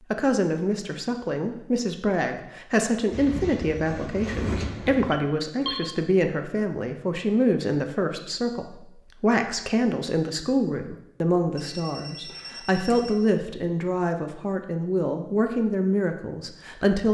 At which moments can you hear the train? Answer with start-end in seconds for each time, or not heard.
3.0-5.2.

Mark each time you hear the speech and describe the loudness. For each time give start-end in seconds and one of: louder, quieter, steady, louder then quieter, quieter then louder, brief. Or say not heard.
0.1-17.0 steady.